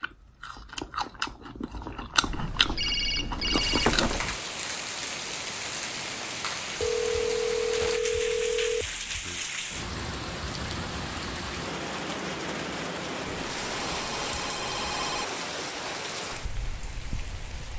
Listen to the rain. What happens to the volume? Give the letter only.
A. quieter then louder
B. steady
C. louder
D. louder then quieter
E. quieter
B.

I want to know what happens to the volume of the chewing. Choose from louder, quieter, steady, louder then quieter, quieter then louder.
louder.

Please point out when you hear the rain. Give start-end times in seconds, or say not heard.
3.6-17.7.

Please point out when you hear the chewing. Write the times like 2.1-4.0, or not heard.
0.0-4.4.